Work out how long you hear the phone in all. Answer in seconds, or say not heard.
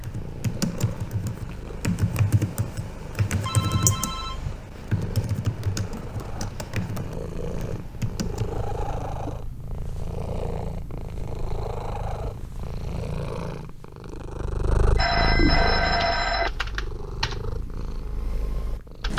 3 s.